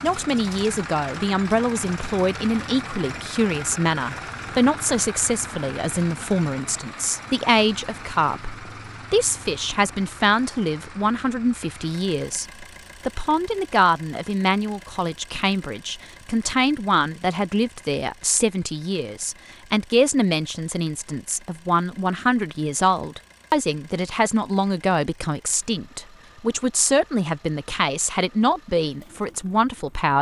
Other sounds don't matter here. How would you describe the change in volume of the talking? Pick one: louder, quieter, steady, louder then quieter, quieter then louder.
steady.